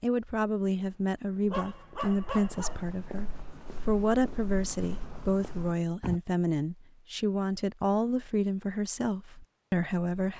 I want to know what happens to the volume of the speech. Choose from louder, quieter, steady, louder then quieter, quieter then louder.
steady.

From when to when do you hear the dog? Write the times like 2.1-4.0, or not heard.
1.5-2.9.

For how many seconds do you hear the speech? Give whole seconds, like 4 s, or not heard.
10 s.